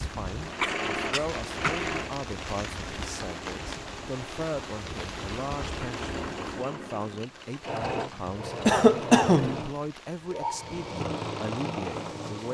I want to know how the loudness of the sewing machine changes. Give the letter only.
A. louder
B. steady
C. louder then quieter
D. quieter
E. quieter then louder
E.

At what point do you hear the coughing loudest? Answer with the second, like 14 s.
9 s.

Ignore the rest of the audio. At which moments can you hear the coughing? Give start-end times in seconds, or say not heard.
0.6-1.9, 8.7-9.6.